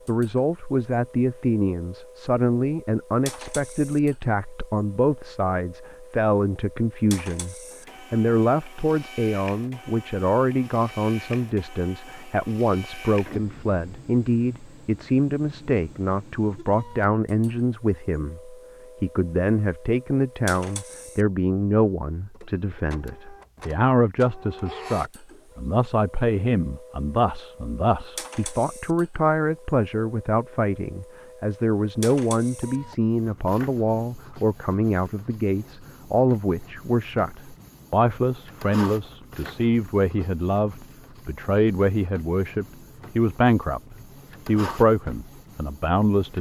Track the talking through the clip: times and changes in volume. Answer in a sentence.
The talking can be heard from 0.1 to 46.3 s, at a steady volume.